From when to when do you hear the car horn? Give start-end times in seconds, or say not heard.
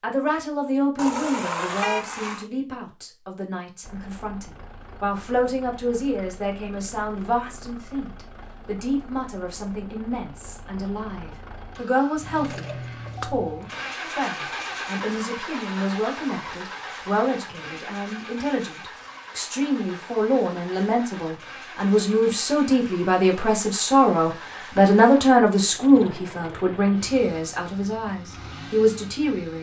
0.9-2.5.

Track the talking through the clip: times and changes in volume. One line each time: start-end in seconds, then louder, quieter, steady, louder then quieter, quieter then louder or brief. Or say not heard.
0.0-29.5 louder.